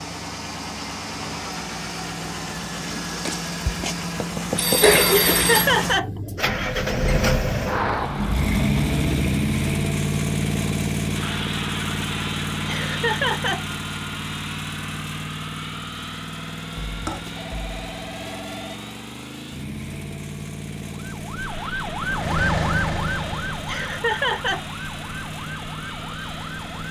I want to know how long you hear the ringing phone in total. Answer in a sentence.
You can hear the ringing phone for 3 seconds altogether.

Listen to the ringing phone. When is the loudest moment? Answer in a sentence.
The volume of the ringing phone peaks at 5 seconds.